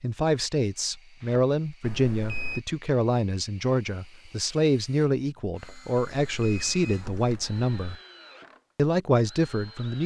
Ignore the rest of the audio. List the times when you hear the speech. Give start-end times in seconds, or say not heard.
0.0-8.0, 8.8-10.0.